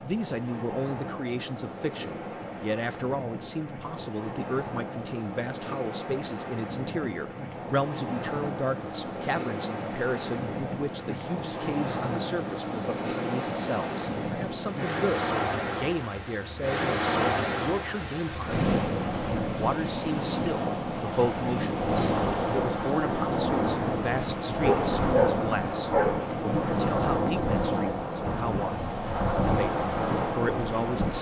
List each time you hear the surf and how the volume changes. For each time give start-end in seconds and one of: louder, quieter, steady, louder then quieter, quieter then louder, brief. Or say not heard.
0.0-31.1 louder.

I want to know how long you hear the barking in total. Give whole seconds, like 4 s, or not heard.
2 s.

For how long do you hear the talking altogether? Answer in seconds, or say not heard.
30 s.